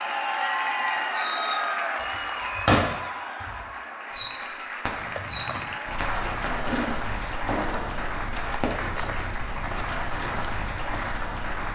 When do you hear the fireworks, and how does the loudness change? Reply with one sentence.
The fireworks can be heard from 1.1 to 9.1 s, getting quieter.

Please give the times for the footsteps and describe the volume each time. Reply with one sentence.
You can hear the footsteps from 5.0 to 11.1 s, getting quieter then louder.